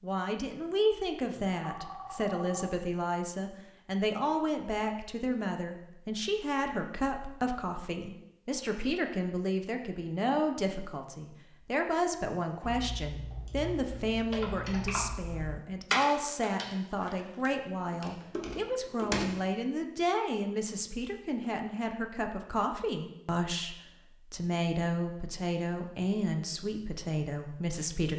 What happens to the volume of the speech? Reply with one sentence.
The loudness of the speech stays about the same.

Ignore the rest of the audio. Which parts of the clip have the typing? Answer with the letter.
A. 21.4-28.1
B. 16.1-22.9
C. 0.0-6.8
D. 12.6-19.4
D.